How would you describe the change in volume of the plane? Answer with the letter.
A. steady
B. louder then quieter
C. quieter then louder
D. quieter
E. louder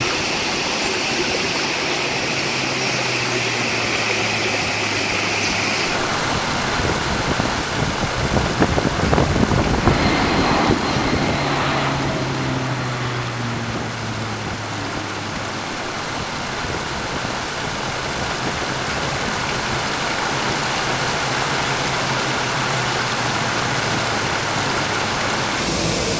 B.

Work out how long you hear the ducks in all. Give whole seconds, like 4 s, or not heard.
not heard.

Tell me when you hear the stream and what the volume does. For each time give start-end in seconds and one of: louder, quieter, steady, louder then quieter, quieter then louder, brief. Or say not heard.
0.0-26.1 quieter then louder.